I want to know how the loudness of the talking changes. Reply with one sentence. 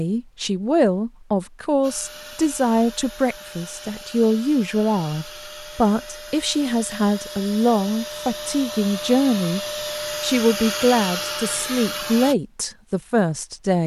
The loudness of the talking stays about the same.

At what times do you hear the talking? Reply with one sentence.
You can hear the talking from 0.0 to 9.6 s and from 10.2 to 13.8 s.